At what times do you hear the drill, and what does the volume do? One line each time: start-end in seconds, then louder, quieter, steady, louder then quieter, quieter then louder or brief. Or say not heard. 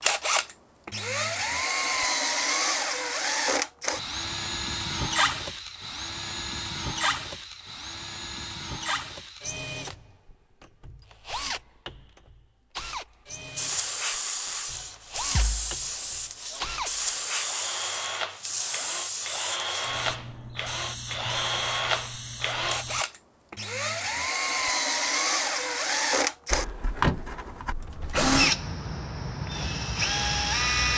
0.0-30.9 quieter then louder.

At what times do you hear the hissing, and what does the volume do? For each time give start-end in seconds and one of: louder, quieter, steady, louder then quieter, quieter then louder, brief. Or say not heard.
13.4-23.1 quieter.